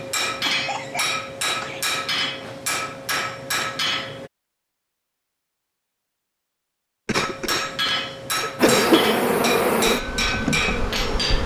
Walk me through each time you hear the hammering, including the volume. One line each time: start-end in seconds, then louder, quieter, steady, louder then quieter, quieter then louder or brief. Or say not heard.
0.0-4.3 steady
7.1-11.4 steady.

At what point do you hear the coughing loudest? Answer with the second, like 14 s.
9 s.